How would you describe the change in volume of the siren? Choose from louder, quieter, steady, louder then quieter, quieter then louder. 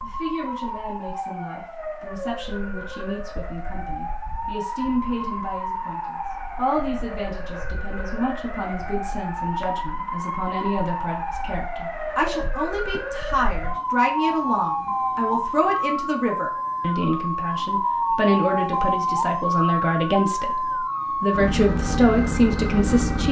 louder.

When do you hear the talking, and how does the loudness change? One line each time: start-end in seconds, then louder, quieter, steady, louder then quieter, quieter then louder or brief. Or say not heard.
0.0-20.6 louder
21.2-23.2 brief.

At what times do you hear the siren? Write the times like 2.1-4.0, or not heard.
0.0-23.2.